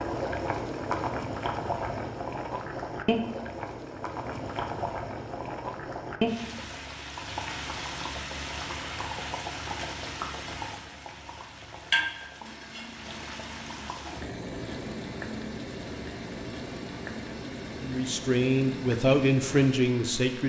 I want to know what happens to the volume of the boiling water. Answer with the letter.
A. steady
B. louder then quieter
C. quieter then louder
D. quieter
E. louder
D.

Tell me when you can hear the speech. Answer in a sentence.
The speech can be heard from 17.8 to 20.4 s.